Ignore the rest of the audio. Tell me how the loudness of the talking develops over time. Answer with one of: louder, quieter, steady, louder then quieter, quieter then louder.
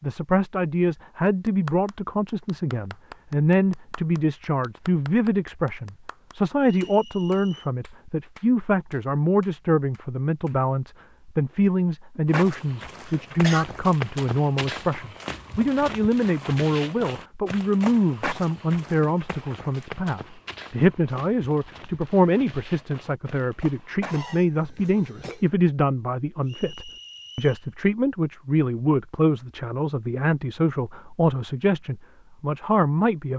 steady.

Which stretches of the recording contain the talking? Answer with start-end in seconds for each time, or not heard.
0.0-33.3.